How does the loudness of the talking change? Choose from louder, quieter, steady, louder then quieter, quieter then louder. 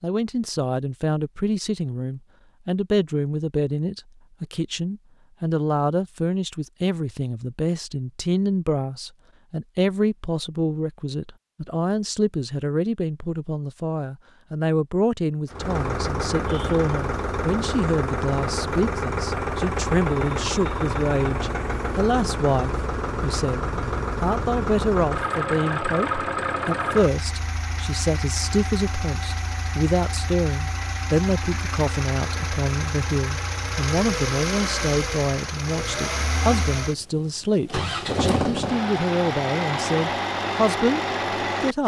steady.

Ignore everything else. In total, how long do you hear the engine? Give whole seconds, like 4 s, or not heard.
26 s.